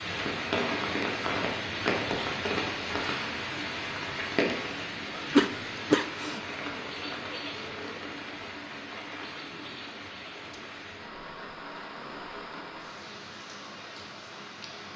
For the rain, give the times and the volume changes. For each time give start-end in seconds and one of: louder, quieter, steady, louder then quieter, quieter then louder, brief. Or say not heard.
0.0-14.9 quieter.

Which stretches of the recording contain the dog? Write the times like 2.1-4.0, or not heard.
not heard.